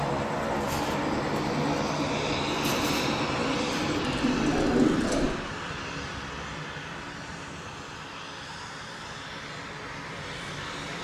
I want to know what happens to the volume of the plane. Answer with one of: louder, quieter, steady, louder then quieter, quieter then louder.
quieter.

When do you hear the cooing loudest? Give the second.
5 s.